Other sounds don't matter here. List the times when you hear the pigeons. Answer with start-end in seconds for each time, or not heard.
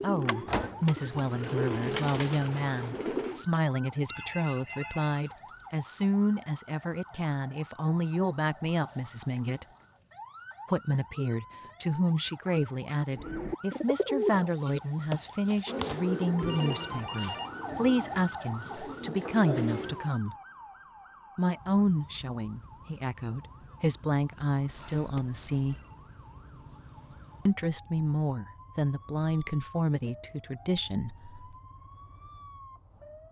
0.0-3.5, 13.1-20.1.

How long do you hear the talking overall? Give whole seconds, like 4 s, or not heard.
28 s.